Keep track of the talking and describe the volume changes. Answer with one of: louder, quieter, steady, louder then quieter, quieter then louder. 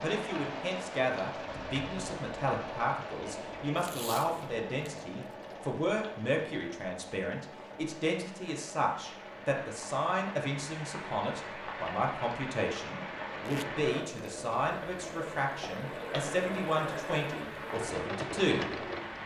steady.